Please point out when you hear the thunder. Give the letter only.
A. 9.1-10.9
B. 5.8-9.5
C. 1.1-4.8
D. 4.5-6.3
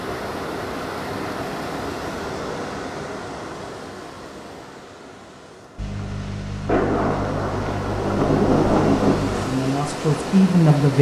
B.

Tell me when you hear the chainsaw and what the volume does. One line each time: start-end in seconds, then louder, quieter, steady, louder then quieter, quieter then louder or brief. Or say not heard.
not heard.